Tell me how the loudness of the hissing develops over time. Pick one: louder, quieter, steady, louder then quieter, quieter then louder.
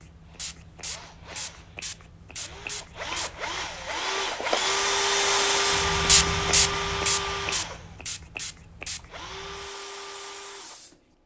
louder then quieter.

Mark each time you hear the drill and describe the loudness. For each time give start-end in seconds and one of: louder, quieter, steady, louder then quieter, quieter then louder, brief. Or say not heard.
0.1-11.2 louder then quieter.